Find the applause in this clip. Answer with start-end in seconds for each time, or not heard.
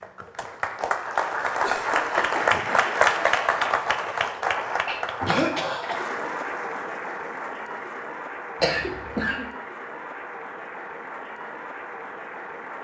0.0-12.7.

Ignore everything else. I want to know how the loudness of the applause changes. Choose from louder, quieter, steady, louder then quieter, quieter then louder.
quieter.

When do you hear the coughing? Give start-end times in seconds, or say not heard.
1.6-2.5, 4.8-6.2, 8.6-9.4.